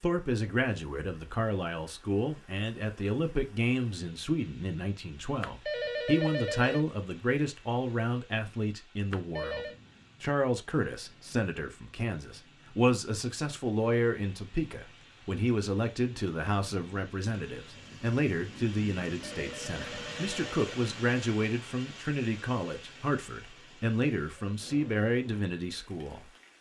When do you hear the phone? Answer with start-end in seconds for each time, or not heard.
5.4-6.8, 9.1-9.8, 19.2-20.8.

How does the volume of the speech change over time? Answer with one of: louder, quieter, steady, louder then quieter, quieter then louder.
steady.